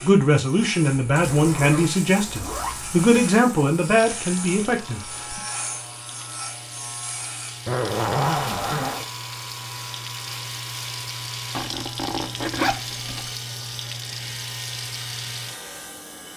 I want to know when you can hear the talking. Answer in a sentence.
The talking can be heard from 0.0 to 5.4 s.